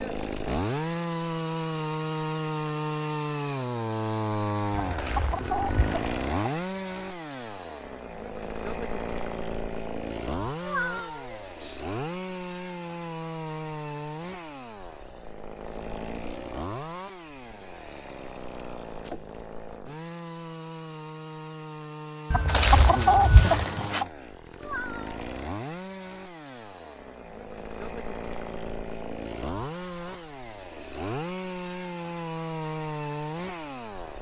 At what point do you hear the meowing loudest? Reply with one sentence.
The loudest moment of the meowing is at 11 seconds.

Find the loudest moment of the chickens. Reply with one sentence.
The volume of the chickens peaks at 23 seconds.